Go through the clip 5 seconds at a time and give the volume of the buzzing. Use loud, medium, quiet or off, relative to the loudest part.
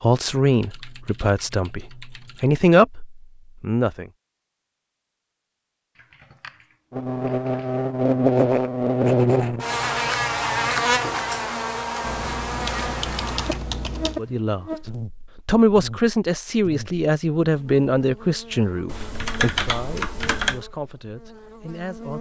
off, loud, medium, quiet, quiet.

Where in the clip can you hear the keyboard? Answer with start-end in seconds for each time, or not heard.
0.5-2.5, 6.0-7.8, 12.0-14.2, 18.9-20.6.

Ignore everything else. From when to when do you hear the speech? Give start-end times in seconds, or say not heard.
0.0-4.0, 14.2-14.7, 15.4-22.1.